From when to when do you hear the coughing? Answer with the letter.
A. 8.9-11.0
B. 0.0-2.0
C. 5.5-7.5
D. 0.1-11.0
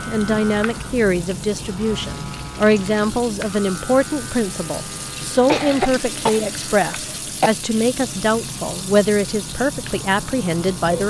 C.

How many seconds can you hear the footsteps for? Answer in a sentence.
You can't hear the footsteps here.